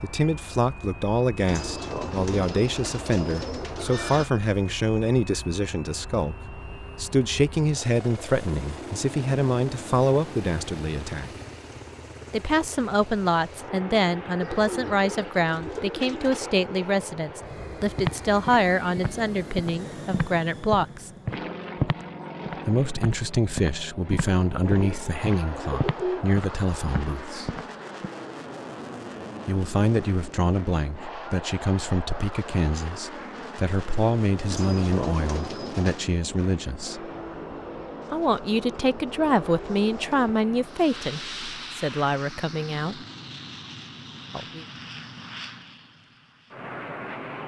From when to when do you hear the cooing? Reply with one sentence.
The cooing can be heard from 1.4 to 4.3 s, from 14.4 to 16.4 s, from 24.6 to 26.2 s, from 34.5 to 36.0 s and from 38.0 to 40.4 s.